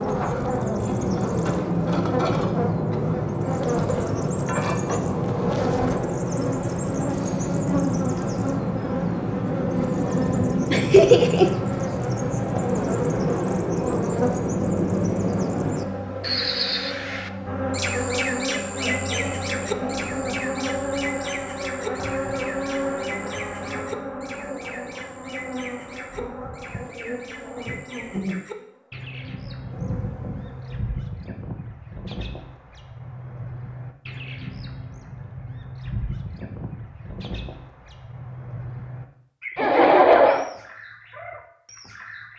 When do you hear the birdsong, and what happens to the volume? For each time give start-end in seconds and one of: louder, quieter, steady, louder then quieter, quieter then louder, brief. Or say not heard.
0.0-42.3 quieter.